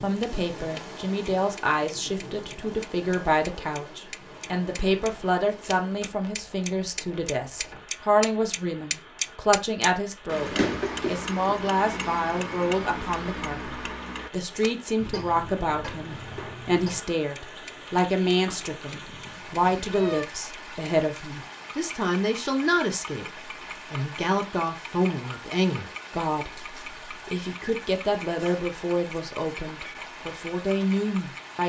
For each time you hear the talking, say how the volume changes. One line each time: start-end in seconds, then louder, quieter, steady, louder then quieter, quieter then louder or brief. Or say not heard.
0.0-31.6 steady.